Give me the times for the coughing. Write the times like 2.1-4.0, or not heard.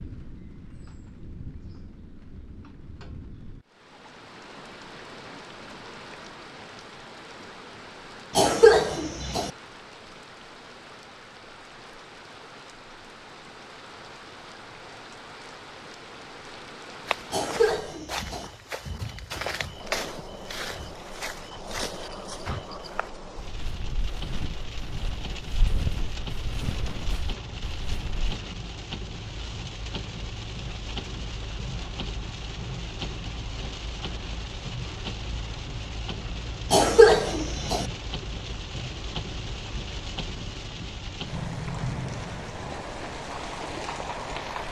8.3-9.5, 17.3-18.5, 36.7-37.9.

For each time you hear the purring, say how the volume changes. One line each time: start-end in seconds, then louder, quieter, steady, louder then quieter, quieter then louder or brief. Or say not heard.
not heard.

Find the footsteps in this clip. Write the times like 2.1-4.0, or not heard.
17.1-28.4.